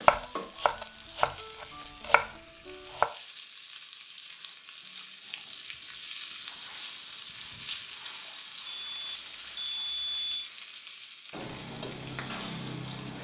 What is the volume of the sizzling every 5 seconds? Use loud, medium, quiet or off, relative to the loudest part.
medium, loud, loud.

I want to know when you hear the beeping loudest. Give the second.
10 s.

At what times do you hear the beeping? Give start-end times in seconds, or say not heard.
8.7-10.5.